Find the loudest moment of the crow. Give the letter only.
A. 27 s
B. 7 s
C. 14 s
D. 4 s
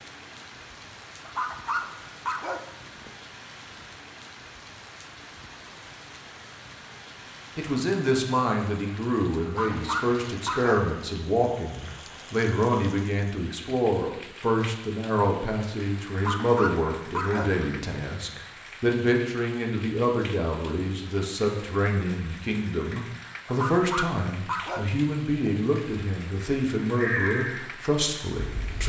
A.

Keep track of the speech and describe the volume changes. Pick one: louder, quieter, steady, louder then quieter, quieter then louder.
steady.